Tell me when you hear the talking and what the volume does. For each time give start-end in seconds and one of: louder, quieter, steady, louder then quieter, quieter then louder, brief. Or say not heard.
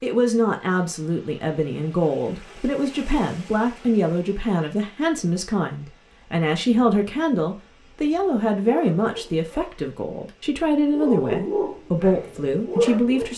0.0-13.3 steady.